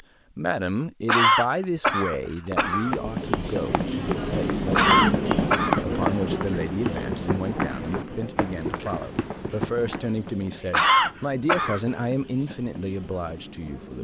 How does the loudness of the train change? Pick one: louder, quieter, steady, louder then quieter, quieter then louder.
quieter.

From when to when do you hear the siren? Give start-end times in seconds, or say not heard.
not heard.